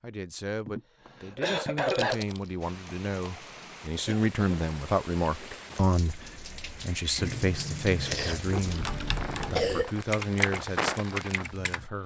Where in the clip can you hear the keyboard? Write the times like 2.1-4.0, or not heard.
8.7-12.0.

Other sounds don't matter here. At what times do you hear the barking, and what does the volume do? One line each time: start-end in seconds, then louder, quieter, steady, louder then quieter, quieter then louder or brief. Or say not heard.
not heard.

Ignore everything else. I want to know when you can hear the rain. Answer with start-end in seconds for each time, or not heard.
2.6-12.0.